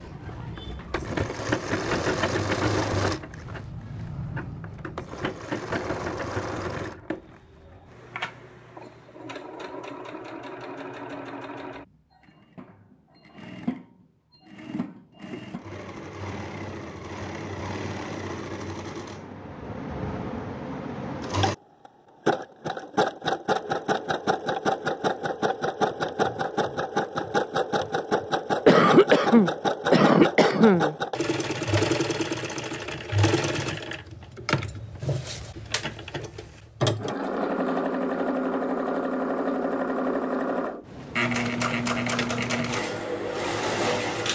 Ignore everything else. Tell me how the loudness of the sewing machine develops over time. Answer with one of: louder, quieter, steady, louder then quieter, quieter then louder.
quieter then louder.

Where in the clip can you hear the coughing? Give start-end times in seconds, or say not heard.
28.6-30.9.